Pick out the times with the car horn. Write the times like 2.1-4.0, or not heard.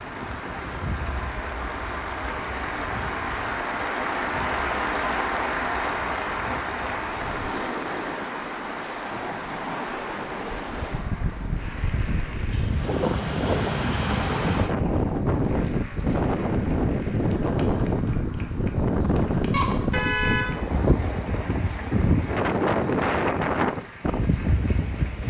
19.5-20.5.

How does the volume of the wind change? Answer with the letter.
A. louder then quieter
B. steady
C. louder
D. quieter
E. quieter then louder
C.